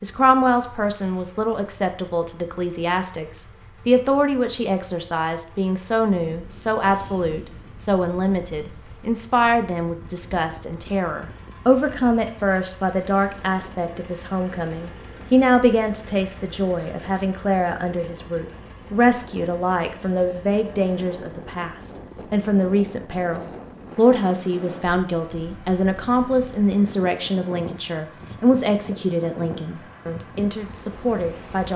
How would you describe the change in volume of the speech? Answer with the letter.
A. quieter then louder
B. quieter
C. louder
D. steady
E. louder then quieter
D.